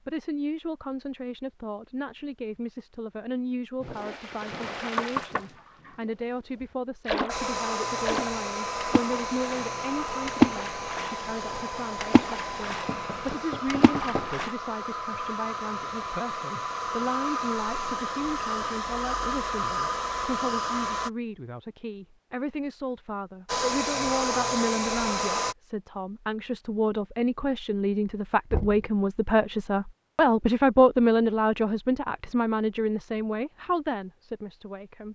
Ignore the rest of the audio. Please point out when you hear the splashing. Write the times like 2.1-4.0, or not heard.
3.8-7.4, 8.1-14.5.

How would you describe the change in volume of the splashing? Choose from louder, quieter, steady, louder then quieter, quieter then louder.
louder then quieter.